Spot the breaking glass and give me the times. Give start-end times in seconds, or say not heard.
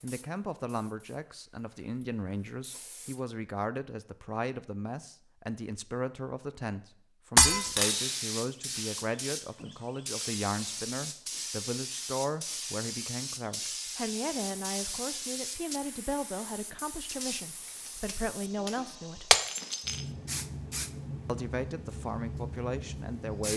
7.3-8.1, 19.3-20.0.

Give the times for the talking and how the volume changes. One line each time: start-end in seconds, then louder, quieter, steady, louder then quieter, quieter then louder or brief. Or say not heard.
0.0-19.4 steady
21.2-23.5 brief.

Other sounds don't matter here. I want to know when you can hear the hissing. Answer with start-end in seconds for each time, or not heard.
0.0-3.2, 7.5-23.5.